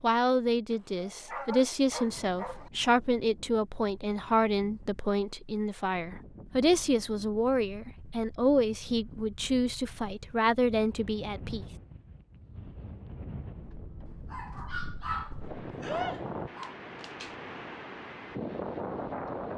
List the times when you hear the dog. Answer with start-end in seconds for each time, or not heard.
0.7-2.7, 14.1-16.8.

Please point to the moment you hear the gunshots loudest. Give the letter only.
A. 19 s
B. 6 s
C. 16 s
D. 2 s
C.